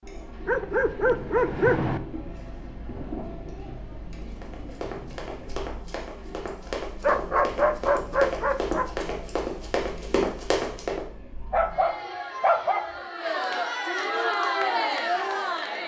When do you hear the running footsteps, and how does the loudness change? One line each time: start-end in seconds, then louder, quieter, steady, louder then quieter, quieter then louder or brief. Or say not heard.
4.4-11.0 louder.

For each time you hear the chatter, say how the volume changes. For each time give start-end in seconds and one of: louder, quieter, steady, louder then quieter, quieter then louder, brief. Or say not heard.
0.0-15.8 louder.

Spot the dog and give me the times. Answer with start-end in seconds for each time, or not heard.
0.5-2.0, 7.0-8.9, 11.5-12.9.